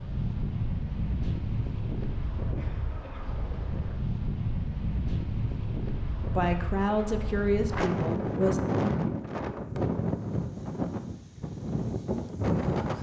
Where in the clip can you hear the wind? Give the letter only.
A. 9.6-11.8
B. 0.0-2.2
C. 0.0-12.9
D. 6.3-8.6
C.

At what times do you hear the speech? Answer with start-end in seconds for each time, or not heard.
6.3-8.6.